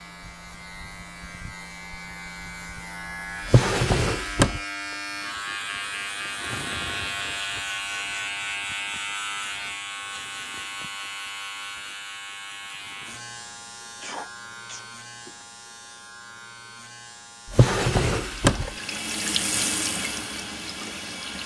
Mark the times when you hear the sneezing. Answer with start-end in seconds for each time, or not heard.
14.0-15.4.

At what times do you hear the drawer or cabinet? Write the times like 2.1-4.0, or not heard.
3.5-4.6, 17.5-18.7.